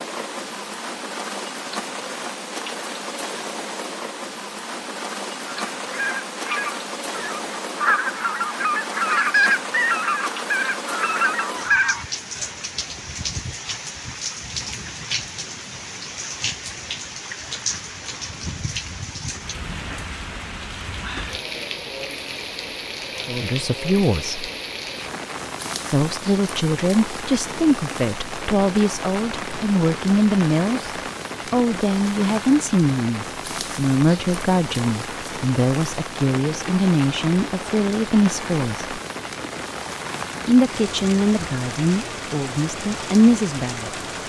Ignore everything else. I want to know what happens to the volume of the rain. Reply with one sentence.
The loudness of the rain stays about the same.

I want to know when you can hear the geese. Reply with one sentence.
You can hear the geese from 5.5 to 12.1 s.